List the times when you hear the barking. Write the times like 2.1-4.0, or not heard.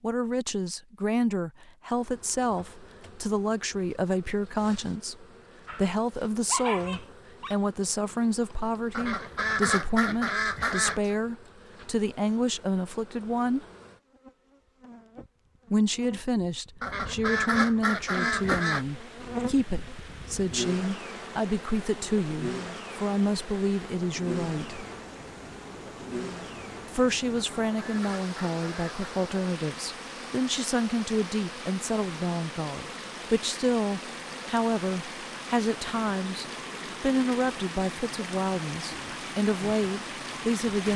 5.7-7.6.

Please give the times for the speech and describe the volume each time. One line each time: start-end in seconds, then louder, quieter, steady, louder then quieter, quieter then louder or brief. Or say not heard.
0.0-13.7 steady
15.7-24.9 steady
26.9-40.9 steady.